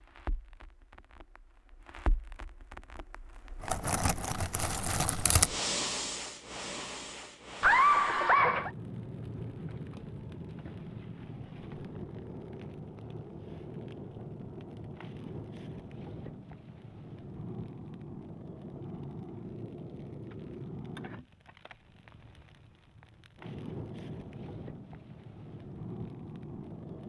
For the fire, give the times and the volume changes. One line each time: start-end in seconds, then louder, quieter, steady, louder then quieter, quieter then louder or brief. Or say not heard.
0.0-27.0 quieter.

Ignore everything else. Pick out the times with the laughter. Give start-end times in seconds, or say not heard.
7.6-8.7.